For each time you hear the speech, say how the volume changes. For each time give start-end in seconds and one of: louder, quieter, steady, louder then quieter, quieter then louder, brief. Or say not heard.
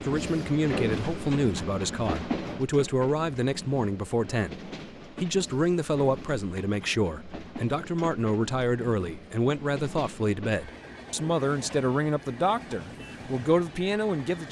0.0-14.4 steady.